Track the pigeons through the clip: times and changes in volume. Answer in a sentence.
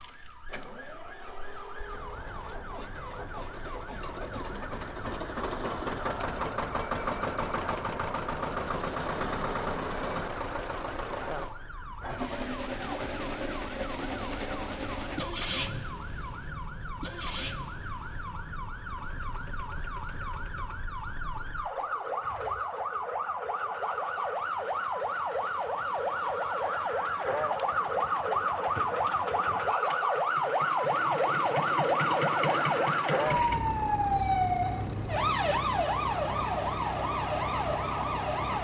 You can't hear the pigeons here.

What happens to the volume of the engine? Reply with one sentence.
The volume of the engine goes down, then up.